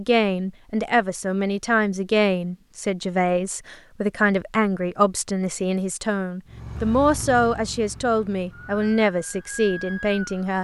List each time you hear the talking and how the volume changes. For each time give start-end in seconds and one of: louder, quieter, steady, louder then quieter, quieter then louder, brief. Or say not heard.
0.0-10.5 steady.